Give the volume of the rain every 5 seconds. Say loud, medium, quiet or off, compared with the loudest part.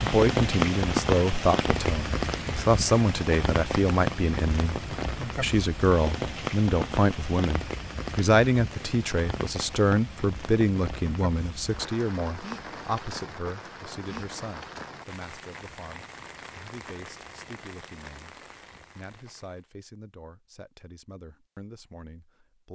loud, medium, medium, quiet, off.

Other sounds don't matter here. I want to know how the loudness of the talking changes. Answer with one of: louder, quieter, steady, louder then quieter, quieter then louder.
quieter.